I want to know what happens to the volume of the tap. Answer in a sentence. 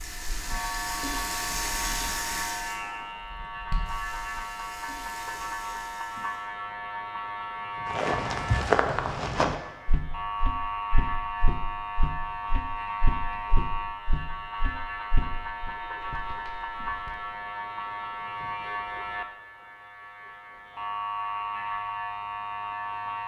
The volume of the tap goes down.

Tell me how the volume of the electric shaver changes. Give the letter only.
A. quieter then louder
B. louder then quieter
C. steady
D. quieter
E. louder
C.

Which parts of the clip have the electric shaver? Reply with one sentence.
You can hear the electric shaver from 0.0 to 23.2 s.